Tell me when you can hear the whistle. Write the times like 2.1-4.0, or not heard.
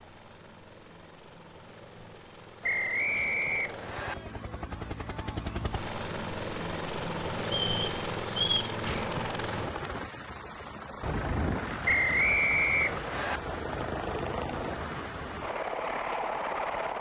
2.6-4.2, 7.5-8.8, 11.8-13.4.